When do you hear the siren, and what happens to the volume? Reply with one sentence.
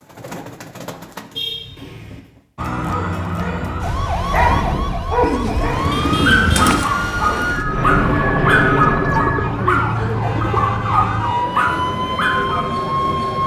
The siren can be heard from 2.5 to 13.4 s, at a steady volume.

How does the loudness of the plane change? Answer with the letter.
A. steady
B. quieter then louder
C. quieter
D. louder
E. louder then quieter
C.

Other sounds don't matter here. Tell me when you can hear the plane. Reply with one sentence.
You can hear the plane from 7.6 to 13.4 s.